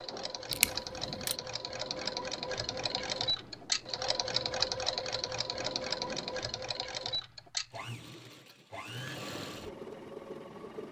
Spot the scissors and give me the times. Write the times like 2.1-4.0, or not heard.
0.5-1.4.